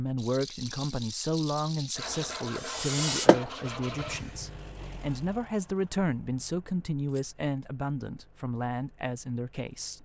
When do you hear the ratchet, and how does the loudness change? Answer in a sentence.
You can't hear the ratchet here.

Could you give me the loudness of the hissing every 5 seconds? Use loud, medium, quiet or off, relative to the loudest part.
loud, off.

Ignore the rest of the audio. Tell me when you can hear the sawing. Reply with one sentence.
The sawing can be heard from 1.9 to 4.2 s.